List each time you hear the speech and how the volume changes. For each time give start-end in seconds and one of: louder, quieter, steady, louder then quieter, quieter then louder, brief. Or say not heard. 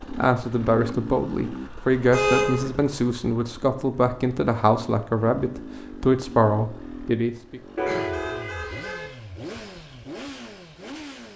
0.1-7.6 steady.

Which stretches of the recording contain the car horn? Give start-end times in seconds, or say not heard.
2.1-2.6, 7.8-9.1.